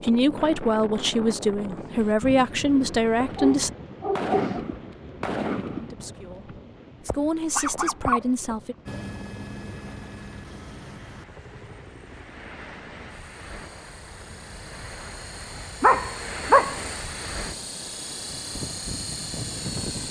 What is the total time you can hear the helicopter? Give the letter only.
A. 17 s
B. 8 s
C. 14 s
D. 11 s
D.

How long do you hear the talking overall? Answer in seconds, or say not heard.
7 s.